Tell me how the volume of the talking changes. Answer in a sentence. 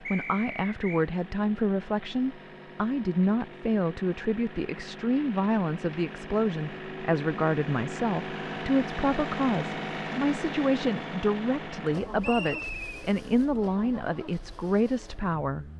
The loudness of the talking stays about the same.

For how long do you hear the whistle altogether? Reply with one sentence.
You can hear the whistle for 2 seconds altogether.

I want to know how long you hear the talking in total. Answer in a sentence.
The talking can be heard for 16 seconds in total.